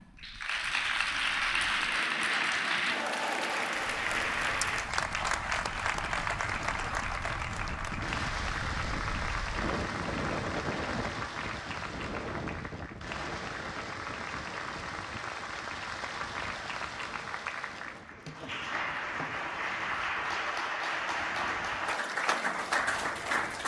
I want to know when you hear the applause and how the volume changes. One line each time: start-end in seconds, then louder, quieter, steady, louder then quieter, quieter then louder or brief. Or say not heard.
0.0-23.6 quieter then louder.